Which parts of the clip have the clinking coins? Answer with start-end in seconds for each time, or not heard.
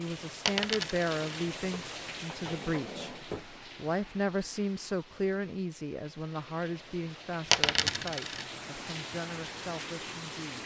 0.5-1.4, 7.5-8.4.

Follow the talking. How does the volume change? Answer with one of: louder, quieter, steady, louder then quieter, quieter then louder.
quieter.